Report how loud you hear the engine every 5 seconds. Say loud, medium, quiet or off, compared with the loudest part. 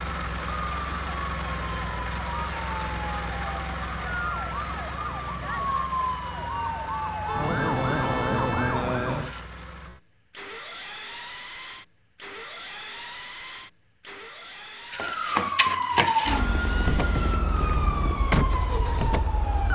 loud, medium, medium, medium.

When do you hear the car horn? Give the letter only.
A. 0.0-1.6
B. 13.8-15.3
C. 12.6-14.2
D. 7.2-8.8
D.